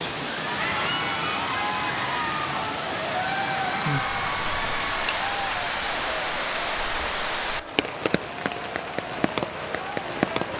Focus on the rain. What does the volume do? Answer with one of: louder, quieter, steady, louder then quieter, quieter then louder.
steady.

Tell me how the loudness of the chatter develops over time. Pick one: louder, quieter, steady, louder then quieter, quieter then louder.
quieter.